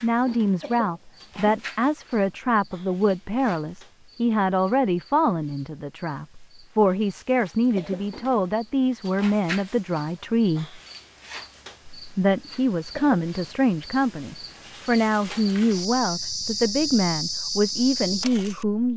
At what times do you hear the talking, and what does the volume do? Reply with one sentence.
The talking can be heard from 0.0 to 10.8 s, at a steady volume; and from 11.9 to 18.9 s, at a steady volume.